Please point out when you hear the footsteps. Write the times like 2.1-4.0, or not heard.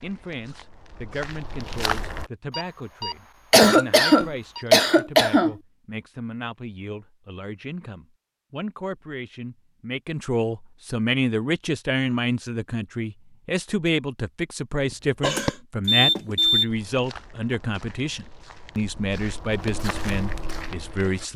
0.0-2.3, 16.6-21.2.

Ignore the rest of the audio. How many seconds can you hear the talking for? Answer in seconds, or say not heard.
21 s.